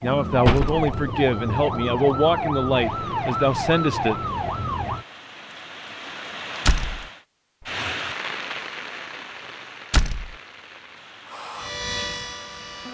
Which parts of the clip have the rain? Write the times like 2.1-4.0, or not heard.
2.8-12.9.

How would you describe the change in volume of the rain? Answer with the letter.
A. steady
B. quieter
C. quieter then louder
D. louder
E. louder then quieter
E.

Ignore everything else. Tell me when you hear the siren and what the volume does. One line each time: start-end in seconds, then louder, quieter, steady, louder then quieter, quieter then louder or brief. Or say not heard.
0.0-5.0 steady
11.2-12.9 brief.